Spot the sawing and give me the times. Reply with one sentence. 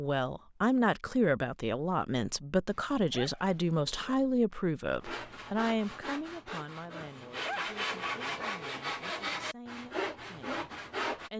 You can hear the sawing from 5.0 to 11.3 s.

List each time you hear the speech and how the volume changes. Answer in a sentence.
The speech can be heard from 0.0 to 11.3 s, getting quieter.